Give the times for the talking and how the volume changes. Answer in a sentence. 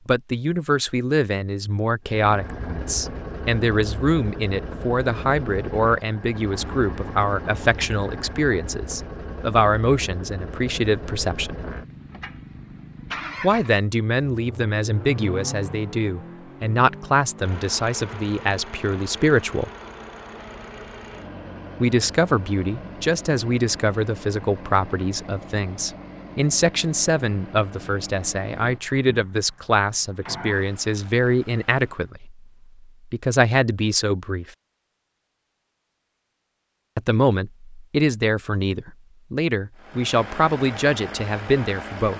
The talking can be heard from 0.1 to 11.6 s, at a steady volume; from 13.4 to 19.7 s, at a steady volume; from 21.8 to 32.5 s, at a steady volume; briefly from 33.1 to 34.5 s; and from 37.0 to 42.1 s, at a steady volume.